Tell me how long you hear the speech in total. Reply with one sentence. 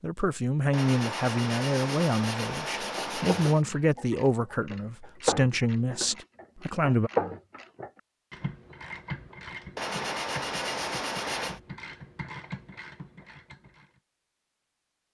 You can hear the speech for 7 seconds altogether.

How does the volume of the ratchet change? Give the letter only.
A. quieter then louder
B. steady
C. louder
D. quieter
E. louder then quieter
E.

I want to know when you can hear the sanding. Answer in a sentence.
The sanding can be heard from 0.7 to 3.6 s and from 9.8 to 11.6 s.